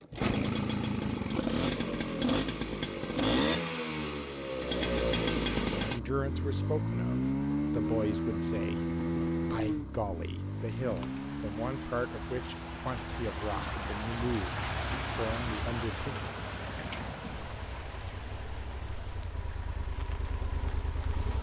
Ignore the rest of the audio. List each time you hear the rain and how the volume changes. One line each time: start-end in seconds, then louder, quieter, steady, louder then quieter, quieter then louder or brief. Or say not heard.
10.3-21.3 louder then quieter.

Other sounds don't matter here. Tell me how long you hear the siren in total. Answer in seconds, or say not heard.
not heard.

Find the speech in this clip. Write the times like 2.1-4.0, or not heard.
5.7-16.2.